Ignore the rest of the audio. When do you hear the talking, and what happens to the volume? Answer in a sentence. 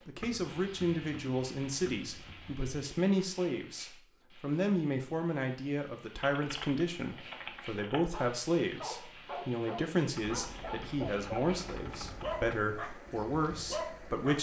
You can hear the talking from 0.1 to 14.3 s, at a steady volume.